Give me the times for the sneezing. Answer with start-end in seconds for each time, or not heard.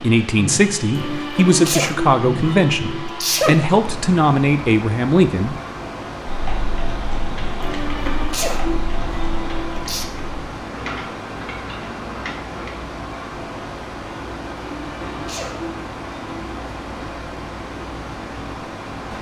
0.9-3.6, 7.6-10.1, 14.7-16.6.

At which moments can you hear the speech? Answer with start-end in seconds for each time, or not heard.
0.0-5.5.